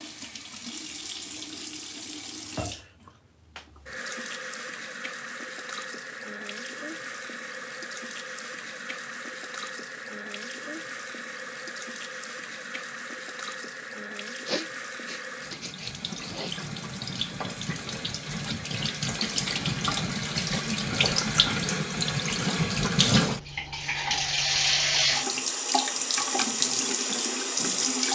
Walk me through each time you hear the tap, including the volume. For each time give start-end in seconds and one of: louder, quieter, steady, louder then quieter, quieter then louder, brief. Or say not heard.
0.0-28.1 louder.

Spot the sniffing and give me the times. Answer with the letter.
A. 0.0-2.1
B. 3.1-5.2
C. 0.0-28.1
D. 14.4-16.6
D.